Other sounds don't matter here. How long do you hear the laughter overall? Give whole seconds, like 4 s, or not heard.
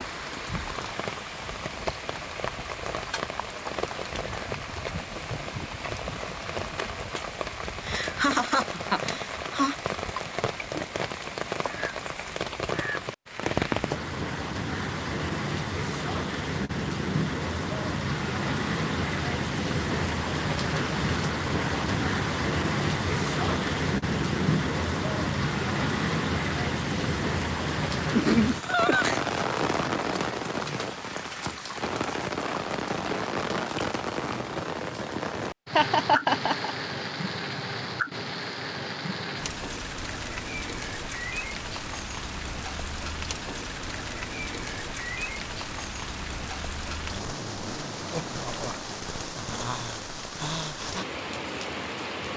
4 s.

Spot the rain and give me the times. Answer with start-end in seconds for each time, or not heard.
0.0-52.3.